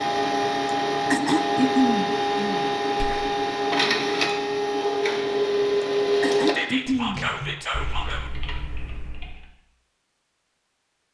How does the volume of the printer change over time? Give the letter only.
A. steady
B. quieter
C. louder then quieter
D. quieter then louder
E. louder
A.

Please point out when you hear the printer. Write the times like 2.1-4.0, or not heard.
0.0-6.5.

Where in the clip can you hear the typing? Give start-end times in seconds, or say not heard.
6.9-9.4.